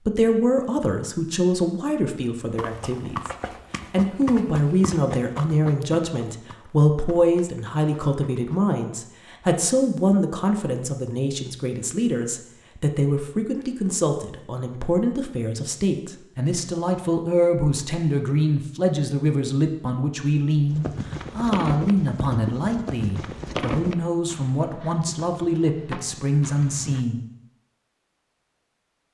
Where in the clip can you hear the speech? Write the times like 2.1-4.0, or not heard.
0.0-3.3, 3.9-27.2.